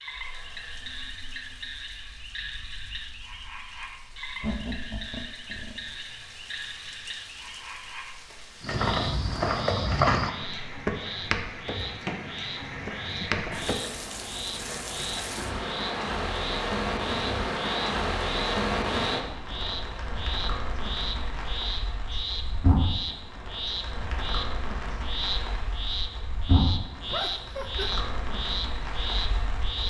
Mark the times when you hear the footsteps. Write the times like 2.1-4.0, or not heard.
8.6-13.8.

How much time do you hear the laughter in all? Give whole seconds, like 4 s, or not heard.
3 s.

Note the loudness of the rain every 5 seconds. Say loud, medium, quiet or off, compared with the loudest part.
quiet, quiet, medium, loud, medium, medium.